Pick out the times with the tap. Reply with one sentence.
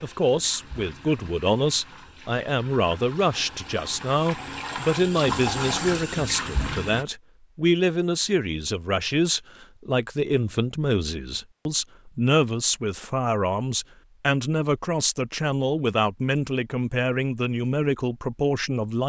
You can hear the tap from 0.0 to 7.0 s.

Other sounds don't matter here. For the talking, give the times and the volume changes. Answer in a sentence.
The talking can be heard from 0.0 to 19.0 s, at a steady volume.